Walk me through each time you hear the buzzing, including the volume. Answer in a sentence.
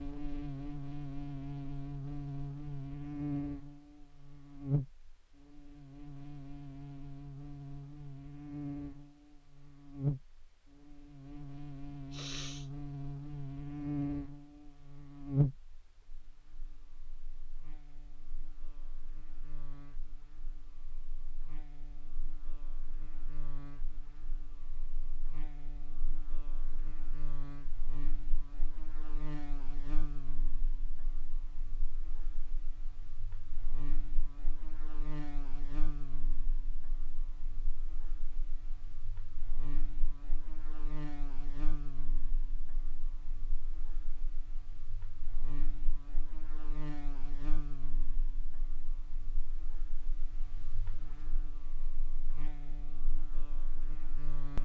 The buzzing can be heard from 0.0 to 54.6 s, getting quieter.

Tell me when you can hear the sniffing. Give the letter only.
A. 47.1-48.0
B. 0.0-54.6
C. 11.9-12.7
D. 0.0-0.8
C.